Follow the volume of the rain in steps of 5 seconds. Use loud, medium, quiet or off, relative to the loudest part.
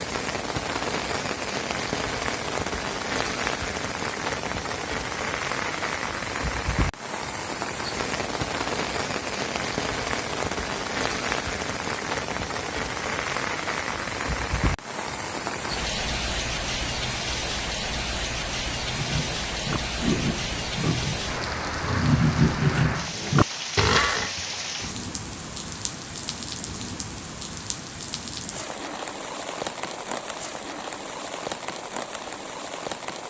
loud, loud, loud, loud, loud, medium, medium.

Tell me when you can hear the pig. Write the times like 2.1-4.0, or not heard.
18.9-24.3.